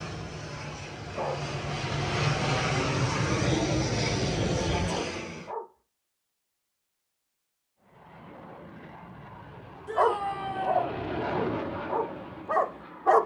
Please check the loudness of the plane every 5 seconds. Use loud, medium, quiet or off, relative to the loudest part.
loud, quiet, medium.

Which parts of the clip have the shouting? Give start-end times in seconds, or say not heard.
4.5-5.0, 9.8-10.9.